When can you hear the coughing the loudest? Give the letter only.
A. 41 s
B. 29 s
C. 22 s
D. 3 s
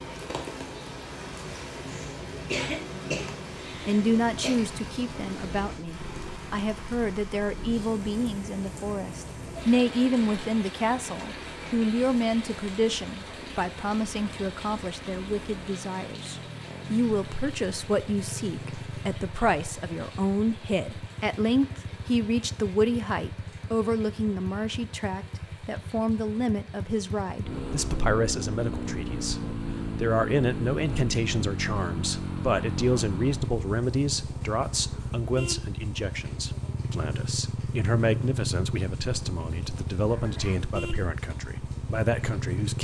D.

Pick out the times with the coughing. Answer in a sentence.
You can hear the coughing from 1.9 to 4.5 s and from 40.0 to 40.8 s.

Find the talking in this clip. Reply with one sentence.
You can hear the talking from 3.8 to 42.7 s.